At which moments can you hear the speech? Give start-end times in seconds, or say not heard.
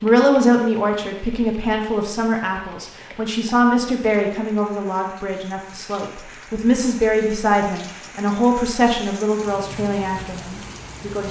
0.0-11.2.